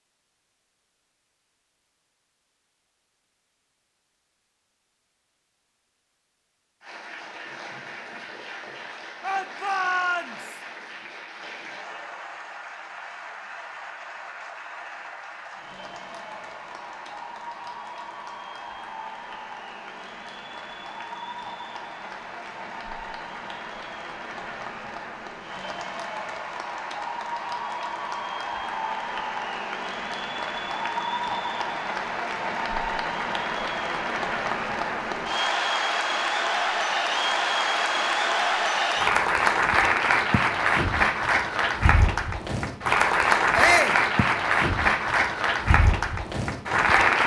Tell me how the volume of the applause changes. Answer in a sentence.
The volume of the applause goes up.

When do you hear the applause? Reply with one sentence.
The applause can be heard from 6.8 to 47.2 s.